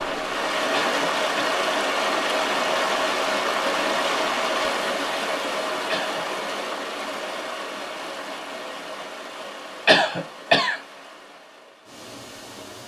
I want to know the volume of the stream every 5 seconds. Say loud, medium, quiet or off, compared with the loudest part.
loud, medium, quiet.